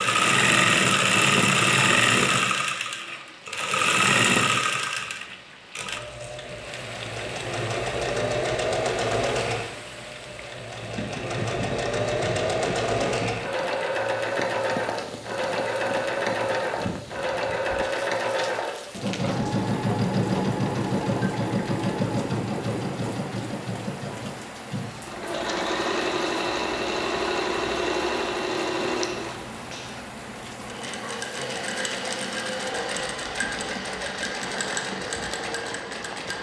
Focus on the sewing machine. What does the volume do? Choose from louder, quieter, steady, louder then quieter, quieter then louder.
quieter.